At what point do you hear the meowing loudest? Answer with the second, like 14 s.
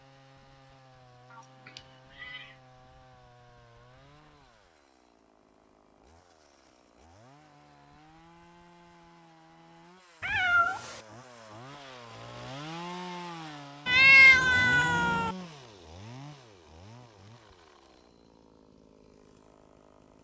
14 s.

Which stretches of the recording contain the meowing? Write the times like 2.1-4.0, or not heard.
1.3-2.5, 10.2-11.0, 13.8-15.3.